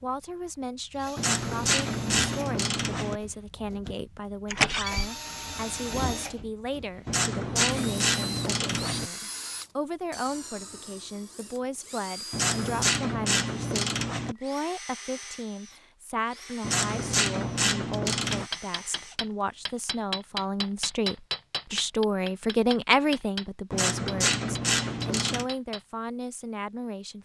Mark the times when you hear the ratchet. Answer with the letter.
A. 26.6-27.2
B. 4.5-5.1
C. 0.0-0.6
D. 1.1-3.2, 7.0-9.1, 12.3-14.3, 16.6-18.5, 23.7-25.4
D.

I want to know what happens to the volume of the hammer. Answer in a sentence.
The loudness of the hammer goes up, then down.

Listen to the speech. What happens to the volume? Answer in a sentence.
The loudness of the speech goes up.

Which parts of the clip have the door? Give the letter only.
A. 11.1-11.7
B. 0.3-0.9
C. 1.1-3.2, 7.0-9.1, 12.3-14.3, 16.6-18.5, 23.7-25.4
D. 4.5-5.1
D.